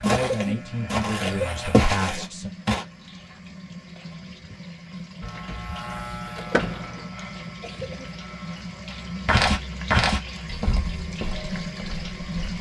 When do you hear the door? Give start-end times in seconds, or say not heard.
6.3-7.0.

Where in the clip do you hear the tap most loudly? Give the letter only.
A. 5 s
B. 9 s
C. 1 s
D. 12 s
D.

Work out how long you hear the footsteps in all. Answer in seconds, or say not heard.
6 s.